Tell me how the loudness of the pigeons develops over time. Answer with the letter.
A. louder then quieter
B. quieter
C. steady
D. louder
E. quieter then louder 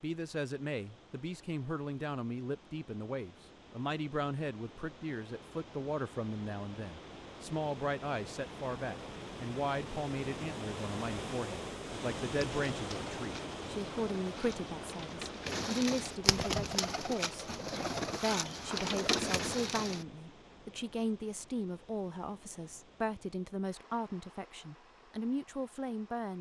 D.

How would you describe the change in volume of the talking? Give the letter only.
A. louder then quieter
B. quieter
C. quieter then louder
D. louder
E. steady
E.